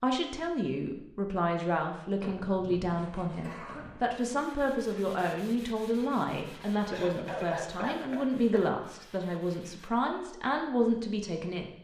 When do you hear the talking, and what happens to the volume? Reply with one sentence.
You can hear the talking from 0.0 to 11.7 s, at a steady volume.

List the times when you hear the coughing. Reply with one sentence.
The coughing can be heard from 2.2 to 4.0 s and from 6.2 to 8.7 s.